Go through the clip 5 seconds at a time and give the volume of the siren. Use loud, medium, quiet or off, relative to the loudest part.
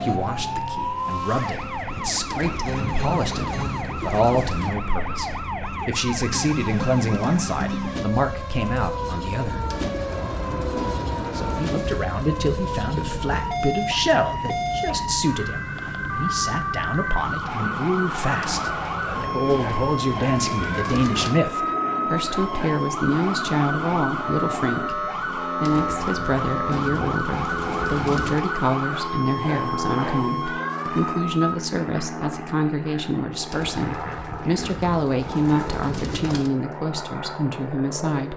loud, loud, loud, loud, loud, loud, loud, off.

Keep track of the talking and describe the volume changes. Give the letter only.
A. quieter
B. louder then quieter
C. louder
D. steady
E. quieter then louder
D.